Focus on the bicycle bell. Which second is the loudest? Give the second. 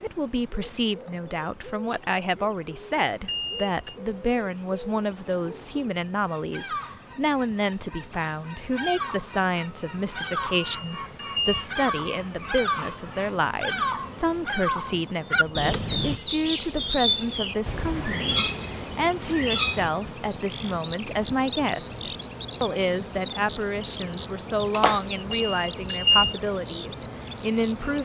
26 s.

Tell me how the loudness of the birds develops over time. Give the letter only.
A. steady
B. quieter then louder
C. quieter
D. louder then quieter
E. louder
D.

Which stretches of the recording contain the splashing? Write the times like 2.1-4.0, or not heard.
24.7-25.4.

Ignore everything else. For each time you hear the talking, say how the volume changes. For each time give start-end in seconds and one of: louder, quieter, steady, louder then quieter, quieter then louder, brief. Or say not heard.
0.0-28.0 steady.